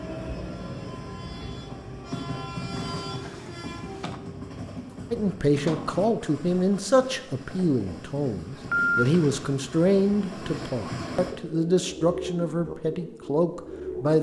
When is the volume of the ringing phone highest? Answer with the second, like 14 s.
9 s.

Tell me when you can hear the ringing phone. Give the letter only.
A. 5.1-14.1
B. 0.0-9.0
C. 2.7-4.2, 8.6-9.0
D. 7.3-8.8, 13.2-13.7
C.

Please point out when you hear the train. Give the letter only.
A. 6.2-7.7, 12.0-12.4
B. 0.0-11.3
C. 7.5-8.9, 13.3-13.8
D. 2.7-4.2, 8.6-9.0
B.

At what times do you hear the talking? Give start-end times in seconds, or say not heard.
5.1-14.1.